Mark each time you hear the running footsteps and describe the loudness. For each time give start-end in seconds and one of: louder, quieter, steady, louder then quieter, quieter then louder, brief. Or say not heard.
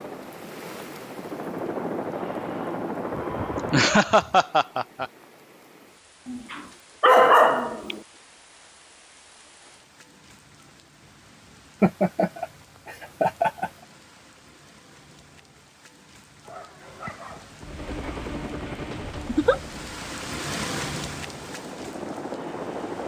not heard.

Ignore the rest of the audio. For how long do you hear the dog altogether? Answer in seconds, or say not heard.
4 s.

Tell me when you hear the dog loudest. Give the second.
7 s.